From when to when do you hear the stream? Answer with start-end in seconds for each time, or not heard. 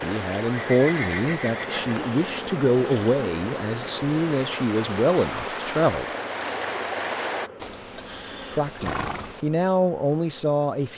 0.0-7.5.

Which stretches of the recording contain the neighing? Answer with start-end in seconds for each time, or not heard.
0.5-1.8, 7.6-9.4.